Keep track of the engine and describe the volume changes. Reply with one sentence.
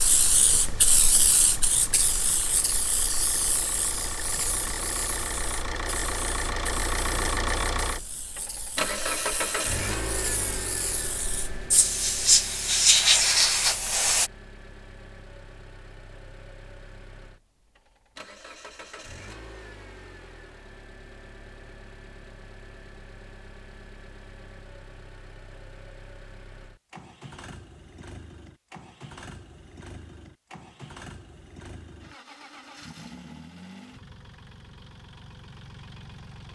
The volume of the engine goes down.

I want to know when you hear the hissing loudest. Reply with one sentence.
The volume of the hissing peaks at 13 seconds.